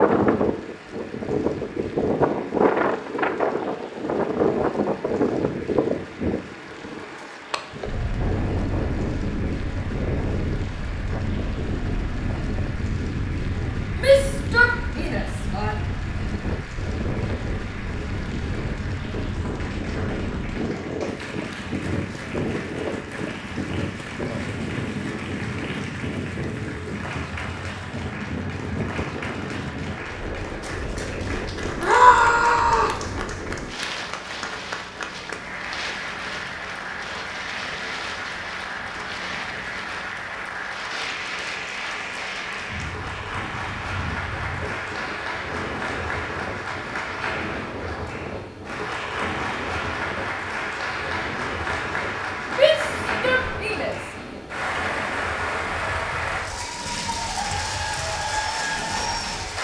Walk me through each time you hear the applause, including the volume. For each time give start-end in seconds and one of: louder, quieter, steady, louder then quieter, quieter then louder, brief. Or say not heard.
0.0-59.5 louder.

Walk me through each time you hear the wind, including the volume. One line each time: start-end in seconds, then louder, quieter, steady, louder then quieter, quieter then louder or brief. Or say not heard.
0.0-59.5 quieter.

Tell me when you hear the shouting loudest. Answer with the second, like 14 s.
32 s.